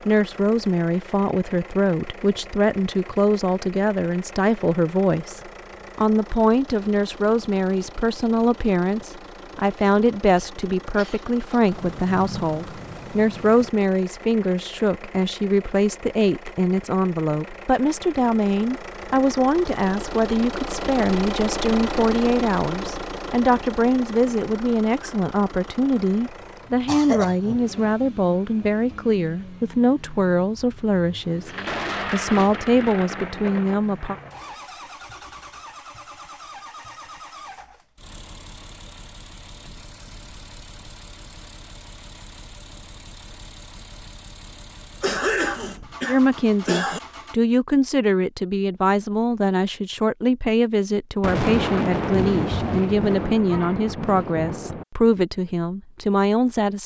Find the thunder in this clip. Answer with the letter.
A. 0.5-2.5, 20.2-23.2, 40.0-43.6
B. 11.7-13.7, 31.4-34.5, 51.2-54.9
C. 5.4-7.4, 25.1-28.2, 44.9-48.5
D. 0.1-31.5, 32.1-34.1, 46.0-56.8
B.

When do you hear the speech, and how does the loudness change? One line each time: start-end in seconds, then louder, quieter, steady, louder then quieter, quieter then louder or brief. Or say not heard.
0.1-31.5 steady
32.1-34.1 brief
46.0-56.8 steady.